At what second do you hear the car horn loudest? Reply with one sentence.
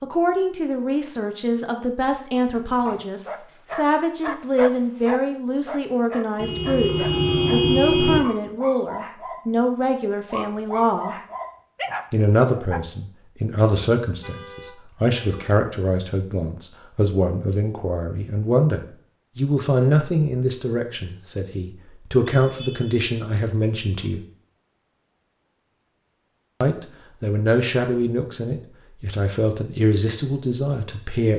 The volume of the car horn peaks at 8 seconds.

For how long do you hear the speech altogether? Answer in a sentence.
The speech can be heard for 28 seconds in total.